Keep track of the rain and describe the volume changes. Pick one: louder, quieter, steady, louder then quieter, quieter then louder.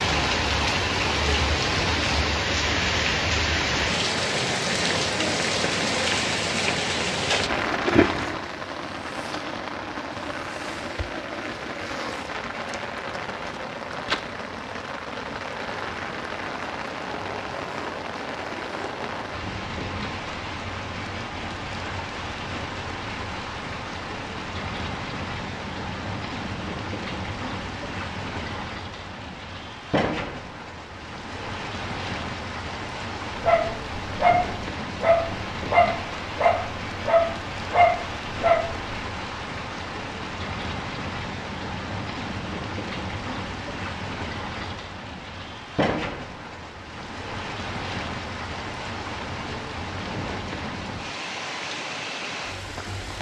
quieter.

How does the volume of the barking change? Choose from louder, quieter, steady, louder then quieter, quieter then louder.
steady.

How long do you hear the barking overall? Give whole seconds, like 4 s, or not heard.
5 s.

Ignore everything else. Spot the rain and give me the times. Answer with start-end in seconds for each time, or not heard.
0.0-53.1.